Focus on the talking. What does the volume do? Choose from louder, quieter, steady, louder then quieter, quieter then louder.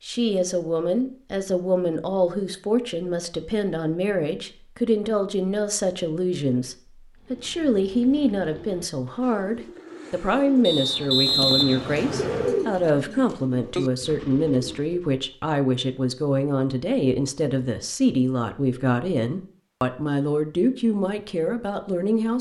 steady.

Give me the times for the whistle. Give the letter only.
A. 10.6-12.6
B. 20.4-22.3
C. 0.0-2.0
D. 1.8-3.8
A.